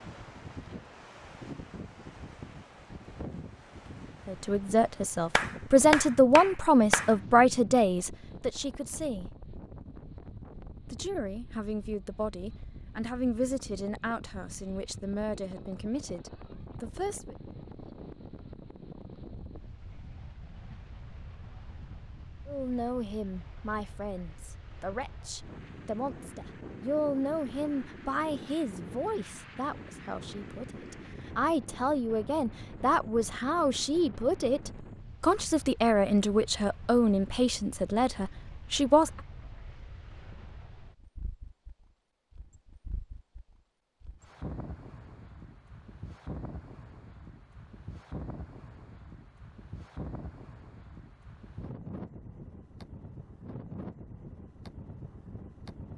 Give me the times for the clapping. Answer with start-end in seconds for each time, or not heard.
5.3-7.2.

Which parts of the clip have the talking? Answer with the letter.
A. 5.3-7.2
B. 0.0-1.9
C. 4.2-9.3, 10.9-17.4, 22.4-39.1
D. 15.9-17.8
C.